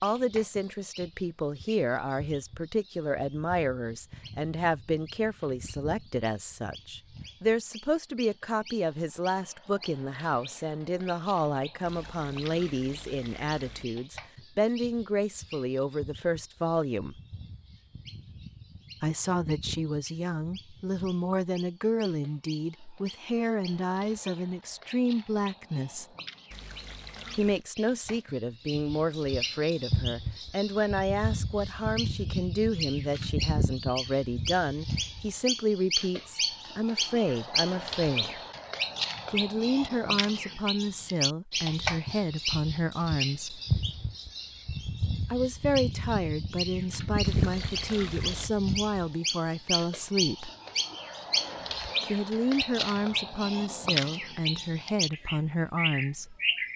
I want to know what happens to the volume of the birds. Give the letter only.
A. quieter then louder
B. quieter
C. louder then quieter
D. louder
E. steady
D.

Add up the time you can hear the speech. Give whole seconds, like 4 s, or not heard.
49 s.